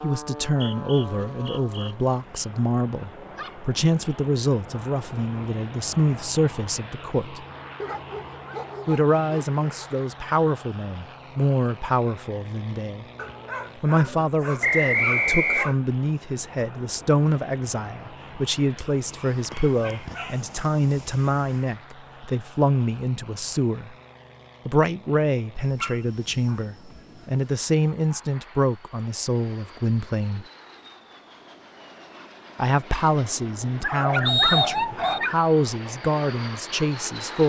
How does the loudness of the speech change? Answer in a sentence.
The volume of the speech stays about the same.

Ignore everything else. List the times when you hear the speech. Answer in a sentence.
You can hear the speech from 0.0 to 7.5 s, from 8.8 to 13.1 s, from 13.8 to 23.9 s, from 24.6 to 30.4 s and from 32.5 to 37.4 s.